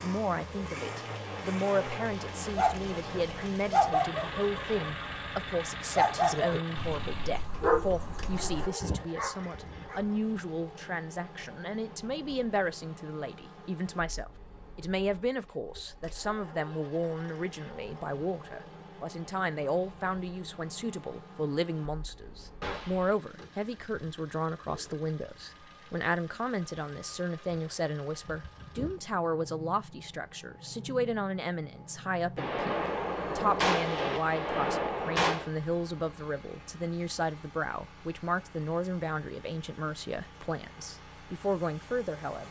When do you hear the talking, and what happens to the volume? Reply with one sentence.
The talking can be heard from 0.0 to 42.4 s, at a steady volume.